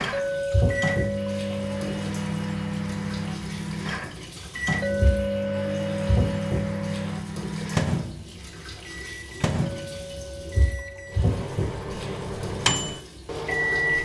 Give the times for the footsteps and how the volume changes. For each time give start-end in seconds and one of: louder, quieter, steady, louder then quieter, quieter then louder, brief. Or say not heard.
not heard.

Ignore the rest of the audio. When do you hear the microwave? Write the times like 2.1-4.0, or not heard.
0.0-13.9.